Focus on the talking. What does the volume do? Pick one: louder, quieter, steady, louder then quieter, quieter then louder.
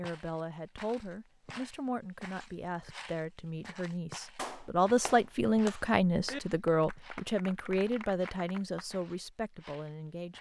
louder then quieter.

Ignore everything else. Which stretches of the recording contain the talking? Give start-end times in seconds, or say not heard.
0.0-10.3.